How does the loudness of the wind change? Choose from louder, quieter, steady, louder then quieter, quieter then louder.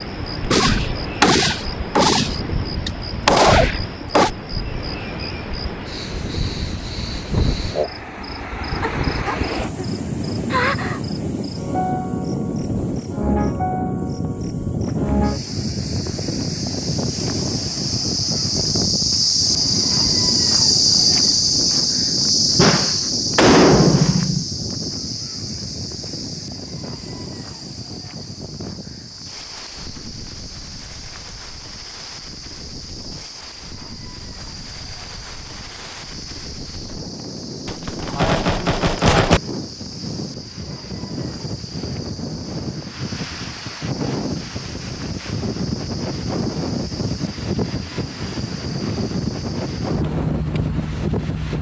quieter then louder.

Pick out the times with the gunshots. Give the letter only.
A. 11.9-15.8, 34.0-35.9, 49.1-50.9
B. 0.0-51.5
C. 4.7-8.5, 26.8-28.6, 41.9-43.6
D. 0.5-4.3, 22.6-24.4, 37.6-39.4
D.